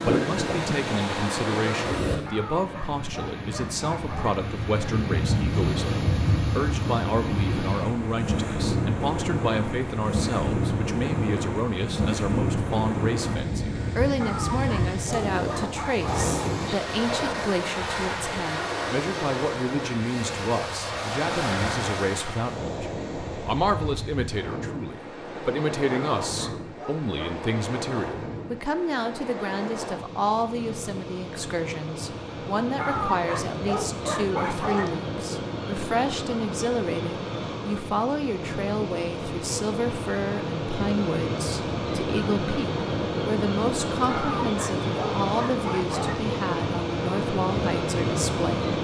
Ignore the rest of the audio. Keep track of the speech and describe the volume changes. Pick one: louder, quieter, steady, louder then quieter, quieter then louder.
steady.